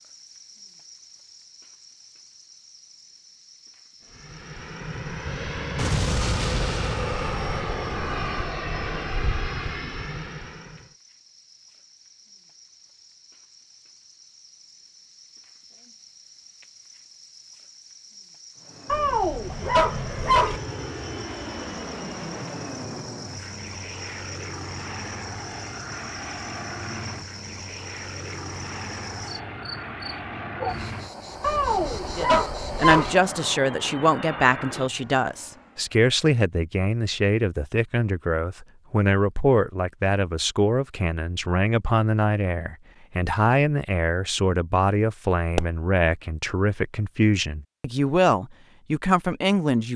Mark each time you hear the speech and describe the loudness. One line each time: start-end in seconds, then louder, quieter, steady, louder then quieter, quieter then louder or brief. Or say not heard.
32.1-49.9 steady.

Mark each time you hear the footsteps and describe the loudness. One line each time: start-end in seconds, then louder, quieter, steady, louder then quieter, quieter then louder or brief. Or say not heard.
not heard.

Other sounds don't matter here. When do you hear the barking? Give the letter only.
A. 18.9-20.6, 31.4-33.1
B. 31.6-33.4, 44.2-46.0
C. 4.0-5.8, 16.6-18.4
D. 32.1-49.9
A.